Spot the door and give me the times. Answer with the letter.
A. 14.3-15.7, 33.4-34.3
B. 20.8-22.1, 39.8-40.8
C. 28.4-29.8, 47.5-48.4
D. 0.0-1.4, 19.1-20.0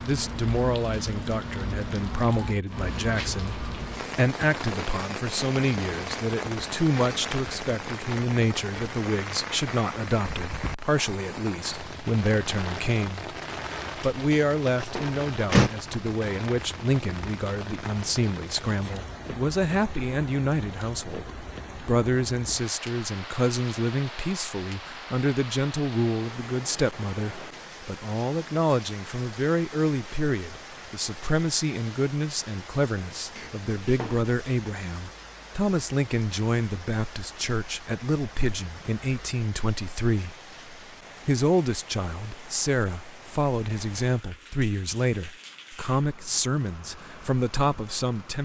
A.